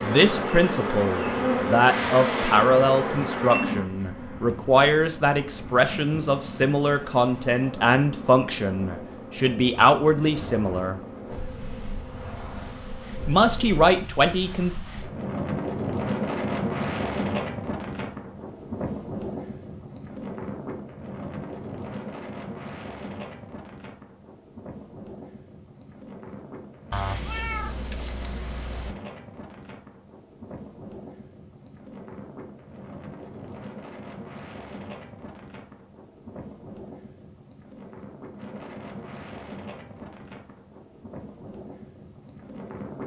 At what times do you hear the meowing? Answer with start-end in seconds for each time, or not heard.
26.9-28.9.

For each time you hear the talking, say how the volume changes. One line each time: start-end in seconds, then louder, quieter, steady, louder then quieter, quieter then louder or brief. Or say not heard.
0.0-11.0 steady
13.2-14.7 brief.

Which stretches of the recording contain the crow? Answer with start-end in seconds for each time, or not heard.
not heard.